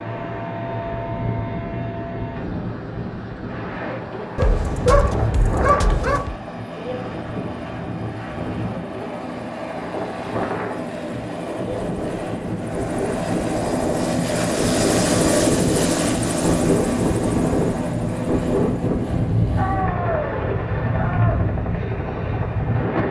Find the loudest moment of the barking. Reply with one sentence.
The loudest moment of the barking is at 5 seconds.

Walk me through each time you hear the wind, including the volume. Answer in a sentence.
The wind can be heard from 0.0 to 23.0 s, getting louder.